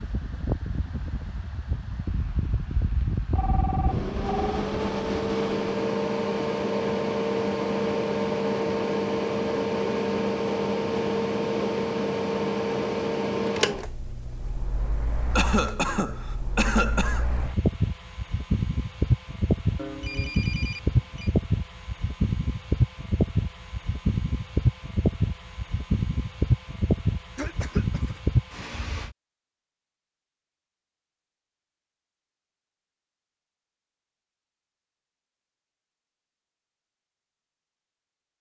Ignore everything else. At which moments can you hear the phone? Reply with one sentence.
You can hear the phone from 3.4 to 4.5 s and from 19.8 to 21.3 s.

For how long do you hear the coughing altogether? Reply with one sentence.
You can hear the coughing for 3 seconds altogether.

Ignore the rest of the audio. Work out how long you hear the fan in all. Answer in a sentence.
The fan can be heard for 29 seconds in total.